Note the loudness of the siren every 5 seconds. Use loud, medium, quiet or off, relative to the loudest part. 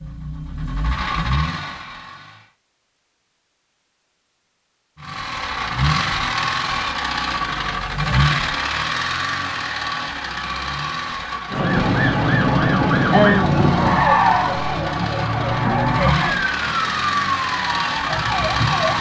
off, off, loud, medium.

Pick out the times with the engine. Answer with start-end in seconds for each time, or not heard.
0.0-2.5, 5.0-18.9.